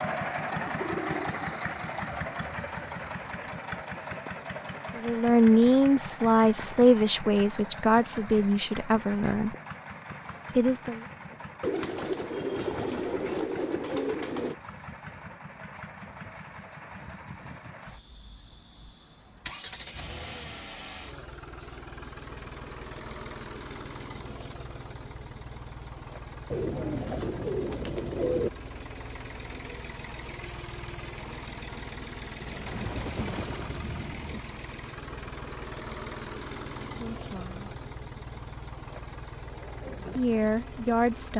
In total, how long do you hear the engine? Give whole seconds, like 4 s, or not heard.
41 s.